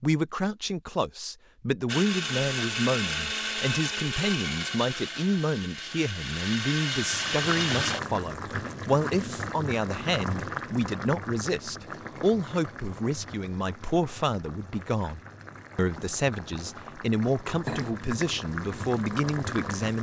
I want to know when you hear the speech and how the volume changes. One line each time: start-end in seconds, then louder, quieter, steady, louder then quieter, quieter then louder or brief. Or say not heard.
0.0-19.9 steady.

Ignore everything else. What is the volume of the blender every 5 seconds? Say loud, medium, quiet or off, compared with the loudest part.
loud, loud, off, off.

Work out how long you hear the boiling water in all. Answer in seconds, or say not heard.
13 s.